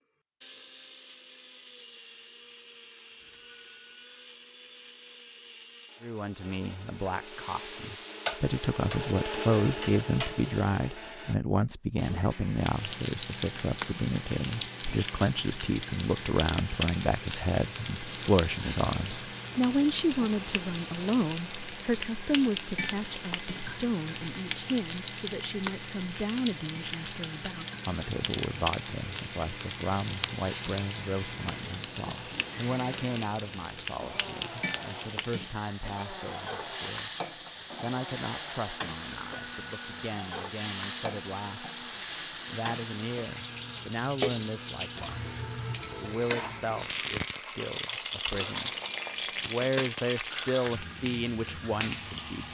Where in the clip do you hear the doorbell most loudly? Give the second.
39 s.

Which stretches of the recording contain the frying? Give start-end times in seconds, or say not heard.
7.2-10.8, 12.6-52.5.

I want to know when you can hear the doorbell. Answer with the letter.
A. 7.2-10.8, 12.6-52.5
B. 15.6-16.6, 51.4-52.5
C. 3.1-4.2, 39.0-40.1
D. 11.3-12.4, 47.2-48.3
C.